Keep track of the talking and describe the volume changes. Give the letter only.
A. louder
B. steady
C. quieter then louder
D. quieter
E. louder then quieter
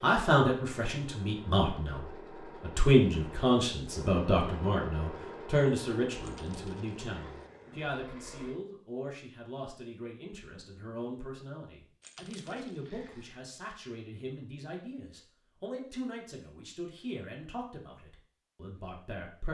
D.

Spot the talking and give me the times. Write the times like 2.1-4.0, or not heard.
0.0-19.5.